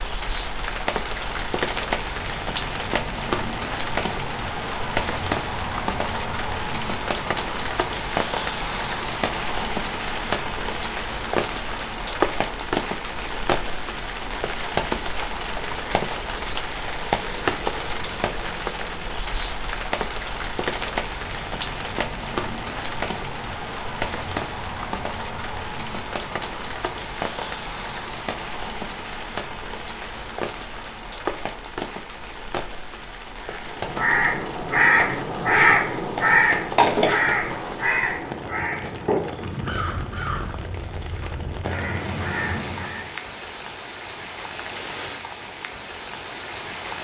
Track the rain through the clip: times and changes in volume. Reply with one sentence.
The rain can be heard from 0.0 to 46.9 s, getting quieter.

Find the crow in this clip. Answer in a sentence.
You can hear the crow from 33.5 to 43.1 s.